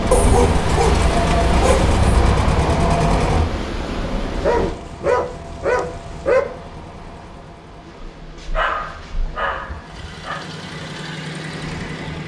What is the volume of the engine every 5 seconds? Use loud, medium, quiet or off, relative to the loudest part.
loud, quiet, medium.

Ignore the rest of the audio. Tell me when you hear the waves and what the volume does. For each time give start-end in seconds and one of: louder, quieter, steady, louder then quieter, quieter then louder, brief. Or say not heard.
0.0-12.2 quieter.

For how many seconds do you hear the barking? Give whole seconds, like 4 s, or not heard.
6 s.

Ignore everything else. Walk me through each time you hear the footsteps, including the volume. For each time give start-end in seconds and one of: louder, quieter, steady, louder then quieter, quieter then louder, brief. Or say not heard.
not heard.